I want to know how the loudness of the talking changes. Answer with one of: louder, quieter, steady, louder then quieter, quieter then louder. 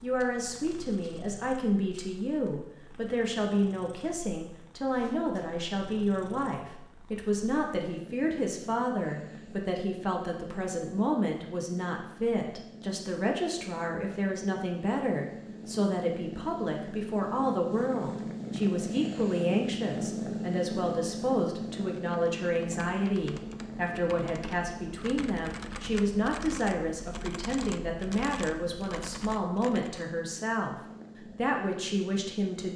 steady.